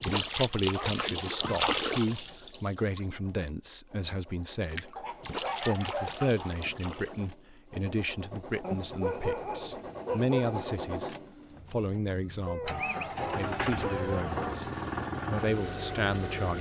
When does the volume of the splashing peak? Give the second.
2 s.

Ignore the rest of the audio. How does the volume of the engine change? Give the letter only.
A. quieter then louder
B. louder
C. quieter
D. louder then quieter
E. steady
B.